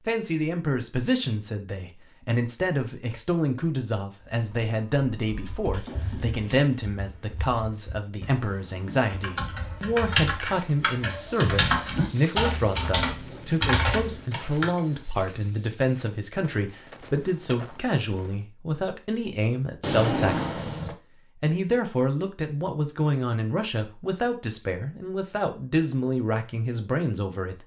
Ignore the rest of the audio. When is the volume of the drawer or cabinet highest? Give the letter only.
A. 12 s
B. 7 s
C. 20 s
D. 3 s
C.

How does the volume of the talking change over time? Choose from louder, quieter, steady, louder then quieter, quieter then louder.
steady.